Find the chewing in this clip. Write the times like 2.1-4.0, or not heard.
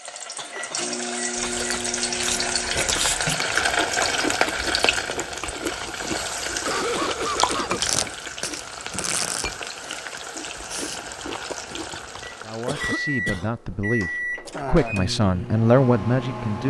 1.4-12.3.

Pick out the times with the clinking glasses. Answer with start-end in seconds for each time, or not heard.
not heard.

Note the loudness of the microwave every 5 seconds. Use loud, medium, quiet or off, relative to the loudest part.
medium, off, loud, loud.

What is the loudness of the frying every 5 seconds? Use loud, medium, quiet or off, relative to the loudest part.
loud, medium, medium, off.